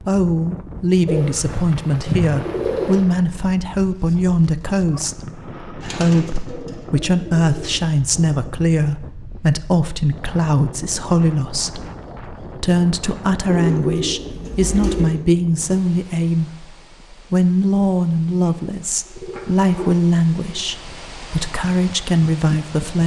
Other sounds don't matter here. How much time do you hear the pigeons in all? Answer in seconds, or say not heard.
8 s.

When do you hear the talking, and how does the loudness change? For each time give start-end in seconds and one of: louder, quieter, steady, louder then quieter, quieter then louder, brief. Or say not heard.
0.1-23.0 steady.